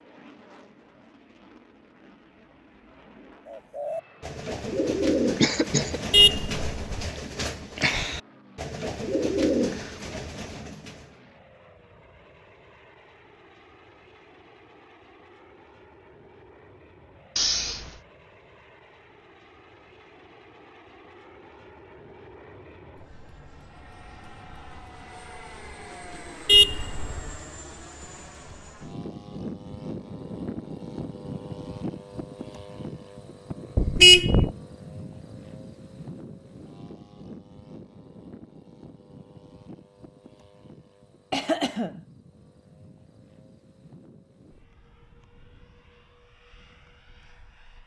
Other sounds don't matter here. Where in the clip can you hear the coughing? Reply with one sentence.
You can hear the coughing from 5.2 to 6.0 s, from 17.4 to 17.9 s and from 41.3 to 42.0 s.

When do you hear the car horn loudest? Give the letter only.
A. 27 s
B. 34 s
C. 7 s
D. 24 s
B.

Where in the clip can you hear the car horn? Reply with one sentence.
The car horn can be heard from 6.1 to 7.1 s, from 26.4 to 27.3 s and from 33.8 to 34.5 s.